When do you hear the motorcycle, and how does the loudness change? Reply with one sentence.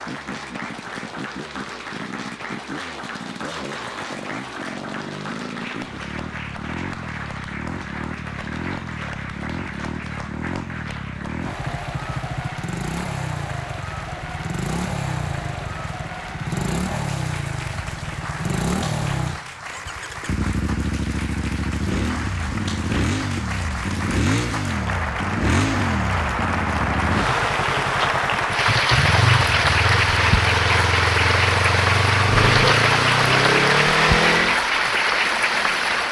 You can hear the motorcycle from 0.0 to 34.6 s, getting louder.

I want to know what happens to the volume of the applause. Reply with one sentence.
The volume of the applause goes up.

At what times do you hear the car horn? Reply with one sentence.
You can hear the car horn from 32.2 to 32.9 s.